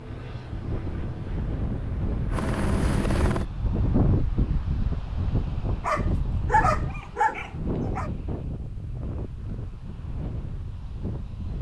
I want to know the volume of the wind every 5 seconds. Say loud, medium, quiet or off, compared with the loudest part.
loud, loud, medium.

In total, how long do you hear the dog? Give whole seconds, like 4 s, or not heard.
2 s.